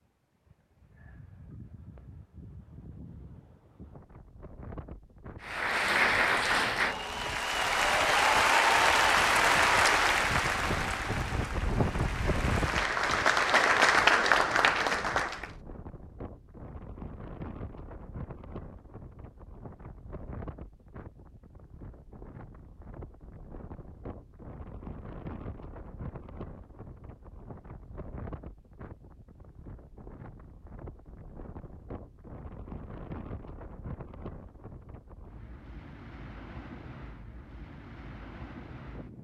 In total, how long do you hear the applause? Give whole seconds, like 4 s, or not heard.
10 s.